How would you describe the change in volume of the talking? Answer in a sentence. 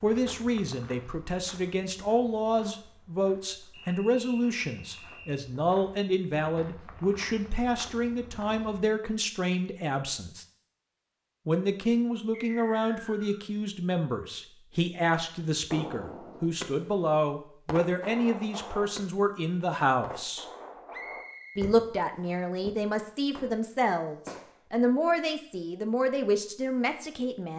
The volume of the talking stays about the same.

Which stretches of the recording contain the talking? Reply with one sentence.
The talking can be heard from 0.0 to 10.4 s, from 11.4 to 20.4 s and from 21.6 to 27.5 s.